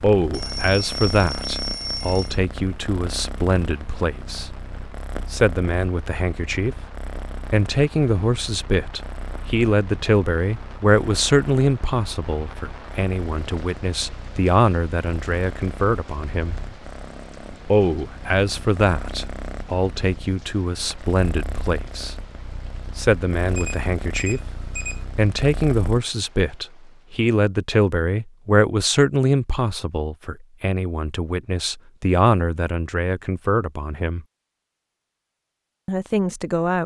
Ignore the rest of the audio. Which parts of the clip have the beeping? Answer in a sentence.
The beeping can be heard from 0.3 to 2.4 s and from 23.5 to 25.1 s.